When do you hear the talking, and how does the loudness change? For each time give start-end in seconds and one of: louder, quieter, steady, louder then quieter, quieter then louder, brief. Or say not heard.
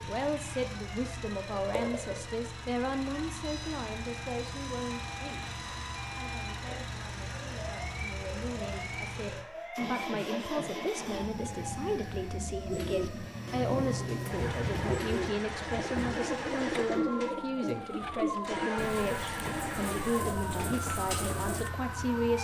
0.1-22.3 quieter then louder.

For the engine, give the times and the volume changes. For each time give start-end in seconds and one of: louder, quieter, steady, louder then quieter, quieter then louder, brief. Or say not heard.
0.0-22.3 steady.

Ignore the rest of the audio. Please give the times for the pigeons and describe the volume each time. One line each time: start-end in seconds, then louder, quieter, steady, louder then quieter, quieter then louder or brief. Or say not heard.
12.7-21.7 steady.